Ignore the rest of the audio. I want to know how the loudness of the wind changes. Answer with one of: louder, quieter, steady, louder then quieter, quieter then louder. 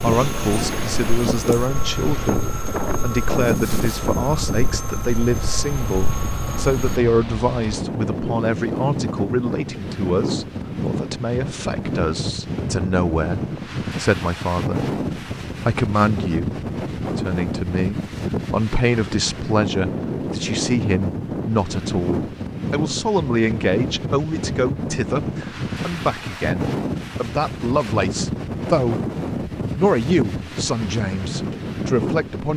steady.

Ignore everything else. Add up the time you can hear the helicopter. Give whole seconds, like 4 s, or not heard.
7 s.